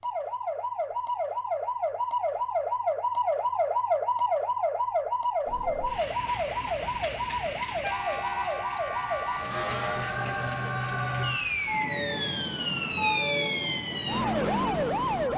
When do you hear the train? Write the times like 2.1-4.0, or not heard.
5.5-15.3.